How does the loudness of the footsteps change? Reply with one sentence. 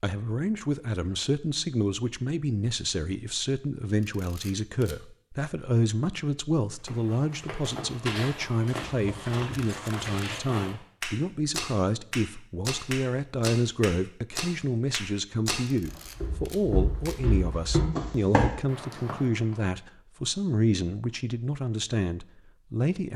The loudness of the footsteps goes up.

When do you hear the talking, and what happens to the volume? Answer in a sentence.
The talking can be heard from 0.0 to 23.1 s, at a steady volume.